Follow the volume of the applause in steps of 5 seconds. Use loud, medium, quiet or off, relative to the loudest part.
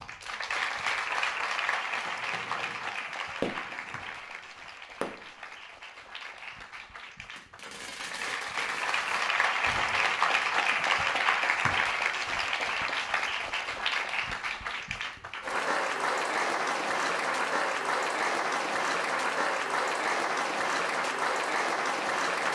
medium, medium, loud, loud, loud.